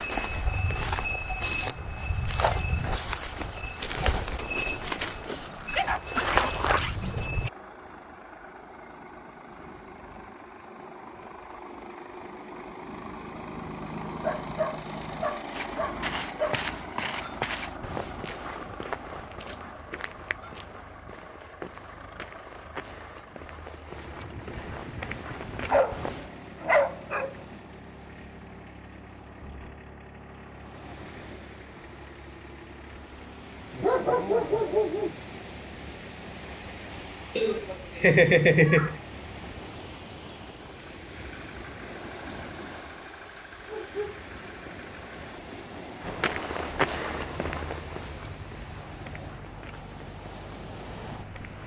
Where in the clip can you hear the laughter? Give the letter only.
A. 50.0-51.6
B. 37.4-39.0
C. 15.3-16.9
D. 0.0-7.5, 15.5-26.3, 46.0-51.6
B.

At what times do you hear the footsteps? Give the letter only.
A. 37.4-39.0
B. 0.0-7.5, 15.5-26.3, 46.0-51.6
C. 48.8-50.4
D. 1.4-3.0
B.